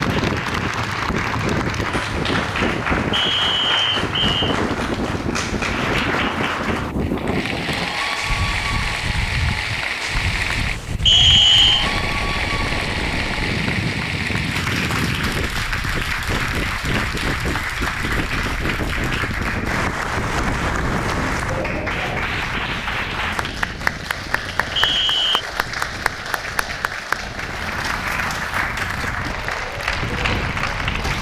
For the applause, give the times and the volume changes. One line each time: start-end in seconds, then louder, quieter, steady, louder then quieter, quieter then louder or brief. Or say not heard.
0.0-31.1 steady.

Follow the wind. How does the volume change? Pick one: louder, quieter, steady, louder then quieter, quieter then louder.
quieter.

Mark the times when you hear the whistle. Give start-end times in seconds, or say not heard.
3.1-4.5, 11.1-11.9, 24.8-25.4.